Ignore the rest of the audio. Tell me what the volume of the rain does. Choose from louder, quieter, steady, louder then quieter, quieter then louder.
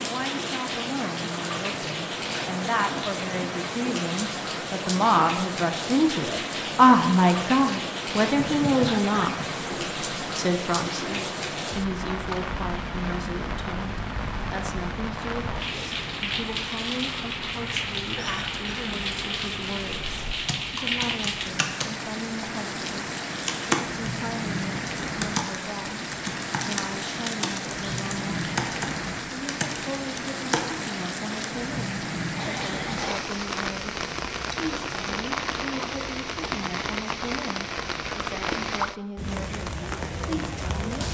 steady.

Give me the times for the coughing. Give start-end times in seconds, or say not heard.
8.3-10.2, 18.1-19.1, 32.4-33.2.